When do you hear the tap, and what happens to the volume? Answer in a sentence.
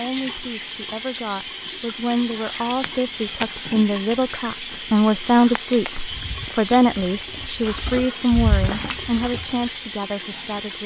You can hear the tap from 0.0 to 10.8 s, at a steady volume.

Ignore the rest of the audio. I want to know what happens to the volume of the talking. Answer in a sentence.
The volume of the talking goes up, then down.